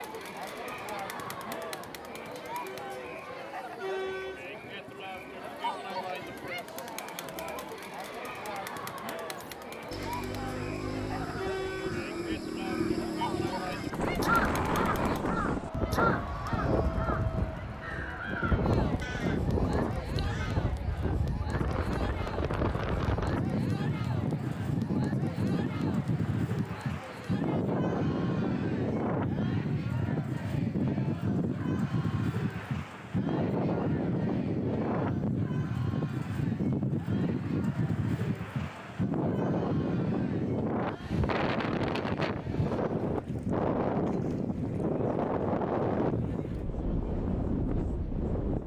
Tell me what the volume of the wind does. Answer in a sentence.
The loudness of the wind stays about the same.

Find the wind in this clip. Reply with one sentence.
You can hear the wind from 13.9 to 48.6 s.